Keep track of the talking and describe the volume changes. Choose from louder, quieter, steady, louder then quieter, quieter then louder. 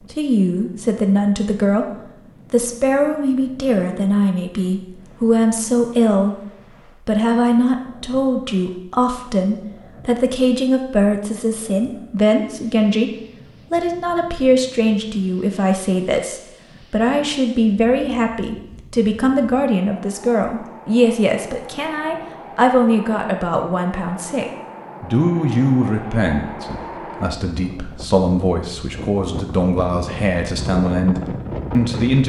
steady.